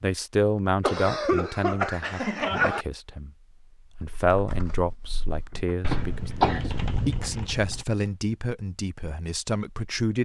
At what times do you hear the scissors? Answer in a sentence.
The scissors can't be heard in this clip.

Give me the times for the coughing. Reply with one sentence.
The coughing can be heard from 0.8 to 2.9 s and from 5.9 to 6.7 s.